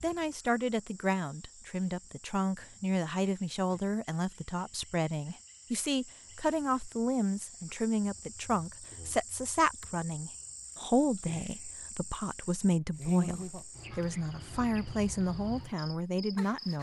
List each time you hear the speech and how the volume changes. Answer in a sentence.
You can hear the speech from 0.0 to 16.7 s, at a steady volume.